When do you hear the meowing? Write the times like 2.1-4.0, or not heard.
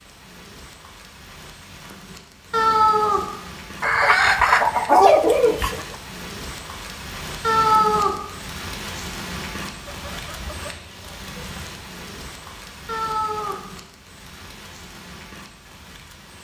2.5-3.3, 7.4-8.2, 12.8-13.7.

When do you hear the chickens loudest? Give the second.
5 s.